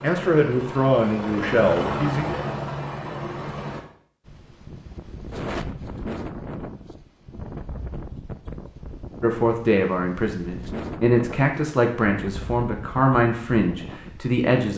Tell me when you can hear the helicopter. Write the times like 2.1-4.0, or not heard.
0.0-3.8.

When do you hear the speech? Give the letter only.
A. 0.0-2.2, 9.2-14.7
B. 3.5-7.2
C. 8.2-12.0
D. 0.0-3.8
A.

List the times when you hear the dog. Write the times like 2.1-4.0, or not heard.
not heard.